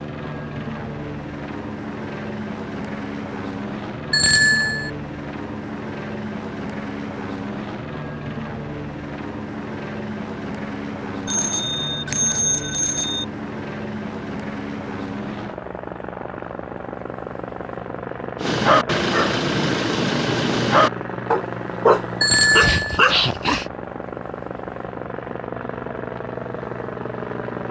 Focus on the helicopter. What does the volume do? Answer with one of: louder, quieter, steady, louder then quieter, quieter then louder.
steady.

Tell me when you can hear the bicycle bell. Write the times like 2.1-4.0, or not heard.
4.1-4.9, 11.2-13.2, 22.2-23.0.